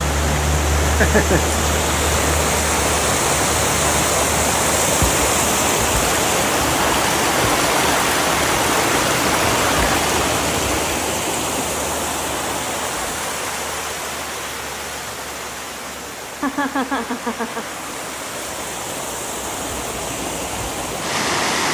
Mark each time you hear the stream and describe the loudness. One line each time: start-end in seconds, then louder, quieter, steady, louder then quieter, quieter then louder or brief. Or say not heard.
0.0-21.7 quieter.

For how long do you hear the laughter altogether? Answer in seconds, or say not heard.
2 s.